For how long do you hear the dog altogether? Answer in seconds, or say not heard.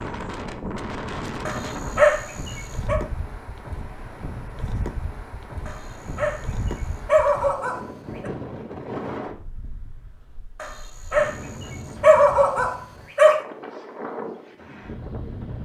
6 s.